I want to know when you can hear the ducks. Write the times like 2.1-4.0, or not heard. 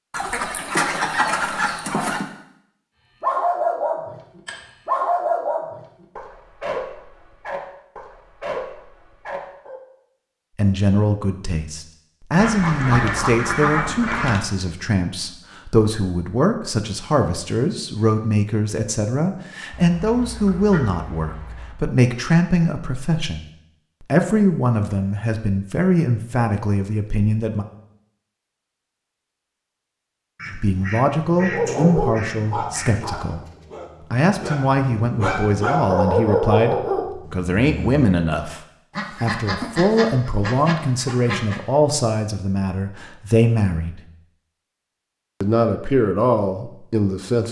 0.1-2.2, 12.3-14.4, 19.7-21.8, 30.4-33.1, 38.9-41.6.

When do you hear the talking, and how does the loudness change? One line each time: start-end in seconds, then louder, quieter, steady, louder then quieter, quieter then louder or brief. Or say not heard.
10.6-27.6 steady
30.5-33.5 brief
34.1-44.0 steady
45.4-47.4 brief.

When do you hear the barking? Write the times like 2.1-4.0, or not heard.
3.2-9.8, 31.4-38.1.